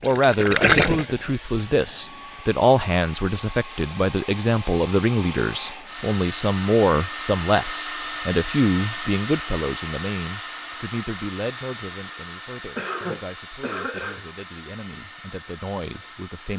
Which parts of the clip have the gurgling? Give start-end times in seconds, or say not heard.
0.0-1.4.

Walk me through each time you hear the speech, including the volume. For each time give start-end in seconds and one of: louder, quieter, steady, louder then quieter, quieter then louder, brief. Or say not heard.
0.0-16.5 quieter.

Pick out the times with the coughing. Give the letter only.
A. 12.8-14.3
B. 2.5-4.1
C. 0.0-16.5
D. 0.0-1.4
A.